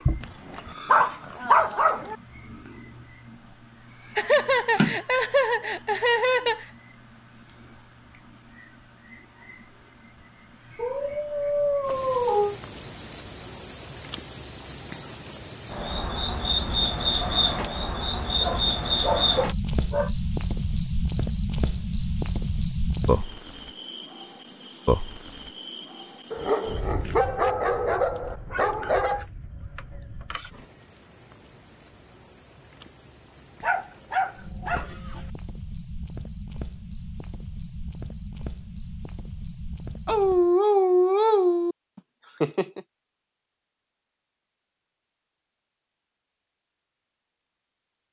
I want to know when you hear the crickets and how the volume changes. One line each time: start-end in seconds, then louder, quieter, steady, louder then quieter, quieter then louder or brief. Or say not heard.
0.0-40.5 quieter.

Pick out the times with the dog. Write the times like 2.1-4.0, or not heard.
0.2-2.1, 10.8-12.6, 18.4-20.1, 26.3-29.2, 33.6-35.2, 40.0-41.8.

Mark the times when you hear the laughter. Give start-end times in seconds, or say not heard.
4.2-6.7, 42.0-42.8.